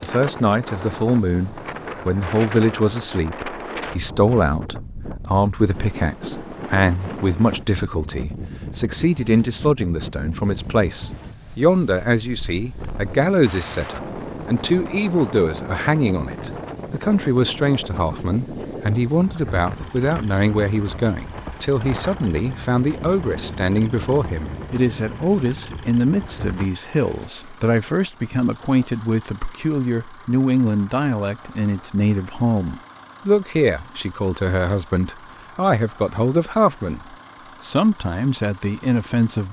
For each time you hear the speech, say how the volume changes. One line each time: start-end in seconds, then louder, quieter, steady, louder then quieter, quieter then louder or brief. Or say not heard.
0.0-39.4 steady.